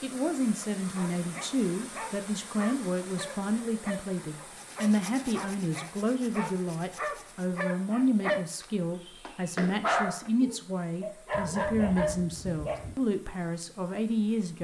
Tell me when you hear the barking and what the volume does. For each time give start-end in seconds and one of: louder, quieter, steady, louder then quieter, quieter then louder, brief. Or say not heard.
0.9-12.8 louder.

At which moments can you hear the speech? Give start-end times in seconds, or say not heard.
0.0-14.5.